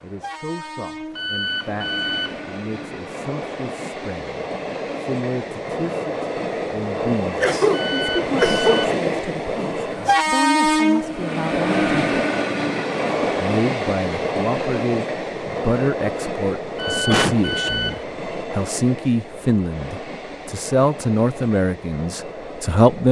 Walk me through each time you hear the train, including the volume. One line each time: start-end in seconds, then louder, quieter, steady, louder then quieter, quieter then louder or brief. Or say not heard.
0.0-23.0 louder then quieter.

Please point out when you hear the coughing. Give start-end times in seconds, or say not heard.
7.4-8.9, 17.0-17.9.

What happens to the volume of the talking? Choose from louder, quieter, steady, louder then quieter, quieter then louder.
louder.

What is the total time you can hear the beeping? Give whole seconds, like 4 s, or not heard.
4 s.